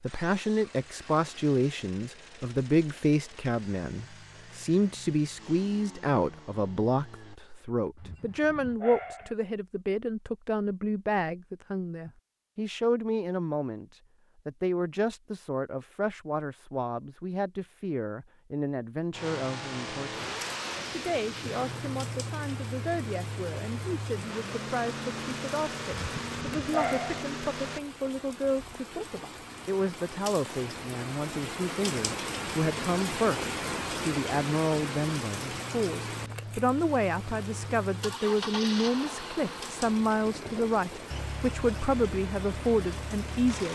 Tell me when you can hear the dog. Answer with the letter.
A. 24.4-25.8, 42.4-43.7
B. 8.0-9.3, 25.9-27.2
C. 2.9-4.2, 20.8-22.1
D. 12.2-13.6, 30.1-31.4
B.